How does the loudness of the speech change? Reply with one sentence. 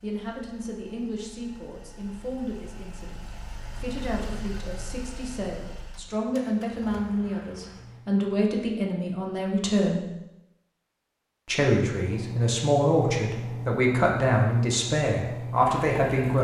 The volume of the speech goes up.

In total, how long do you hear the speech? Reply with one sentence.
The speech can be heard for 15 seconds in total.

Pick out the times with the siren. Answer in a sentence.
You can't hear the siren here.